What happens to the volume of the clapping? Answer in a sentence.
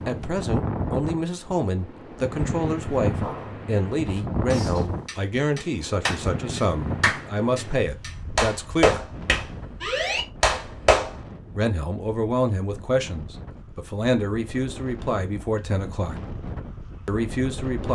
The loudness of the clapping goes up.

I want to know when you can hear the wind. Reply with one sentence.
The wind can be heard from 0.0 to 17.9 s.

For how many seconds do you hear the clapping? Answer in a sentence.
You can hear the clapping for 8 seconds altogether.